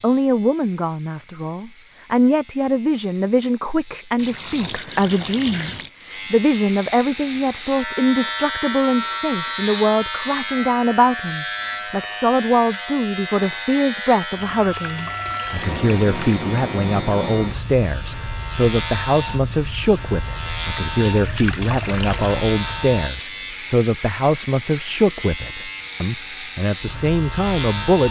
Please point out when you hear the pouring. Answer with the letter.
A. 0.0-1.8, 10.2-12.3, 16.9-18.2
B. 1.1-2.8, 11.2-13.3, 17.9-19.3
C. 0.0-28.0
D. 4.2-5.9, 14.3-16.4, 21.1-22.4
D.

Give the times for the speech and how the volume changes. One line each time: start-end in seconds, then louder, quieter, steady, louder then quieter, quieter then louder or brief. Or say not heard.
0.0-28.0 steady.